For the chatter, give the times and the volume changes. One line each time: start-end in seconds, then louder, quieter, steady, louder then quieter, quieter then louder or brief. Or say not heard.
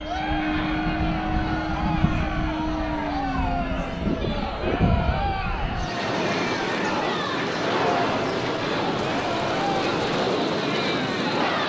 0.0-11.6 steady.